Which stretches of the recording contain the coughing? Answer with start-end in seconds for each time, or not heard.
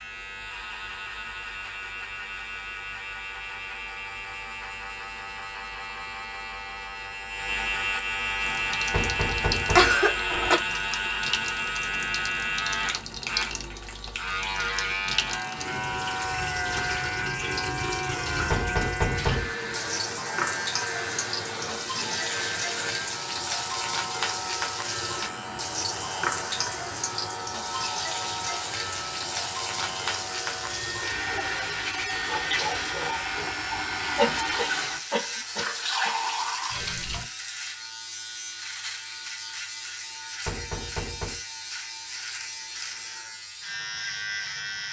9.7-10.6, 34.1-36.1.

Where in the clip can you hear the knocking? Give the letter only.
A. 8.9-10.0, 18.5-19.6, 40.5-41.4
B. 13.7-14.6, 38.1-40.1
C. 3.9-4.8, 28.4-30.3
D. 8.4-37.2
A.